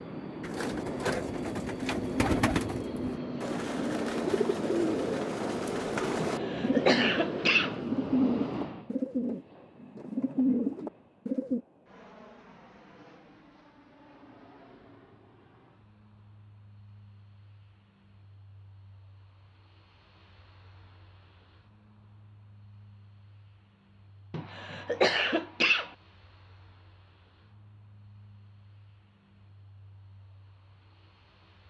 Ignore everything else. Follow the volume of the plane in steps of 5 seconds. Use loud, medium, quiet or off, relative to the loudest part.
loud, loud, quiet, quiet, quiet, quiet, quiet.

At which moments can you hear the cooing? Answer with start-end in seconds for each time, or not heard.
0.4-11.6.